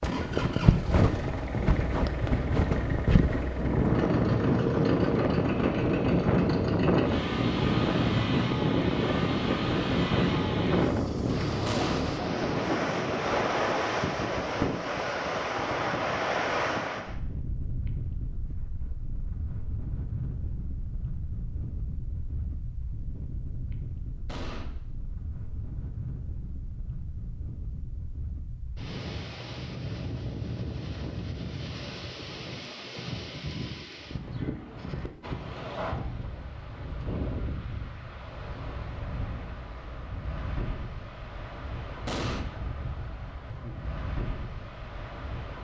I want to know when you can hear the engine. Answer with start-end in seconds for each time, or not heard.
0.0-12.2.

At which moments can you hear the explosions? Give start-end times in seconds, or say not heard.
11.7-12.1, 24.2-24.7, 42.0-42.5.